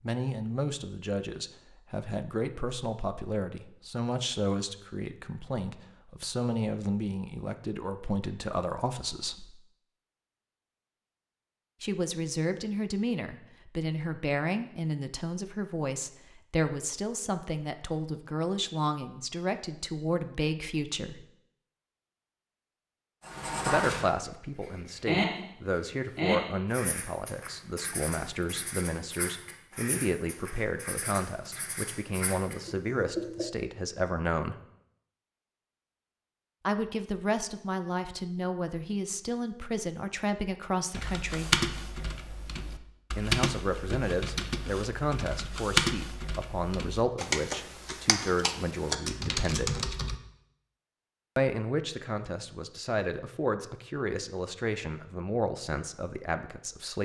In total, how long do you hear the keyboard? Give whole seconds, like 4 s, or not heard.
9 s.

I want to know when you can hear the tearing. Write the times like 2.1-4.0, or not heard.
not heard.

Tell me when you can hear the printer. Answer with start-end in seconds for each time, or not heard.
not heard.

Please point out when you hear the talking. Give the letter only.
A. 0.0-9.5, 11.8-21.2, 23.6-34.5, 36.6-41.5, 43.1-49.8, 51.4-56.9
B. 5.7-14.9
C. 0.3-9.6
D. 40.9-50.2
A.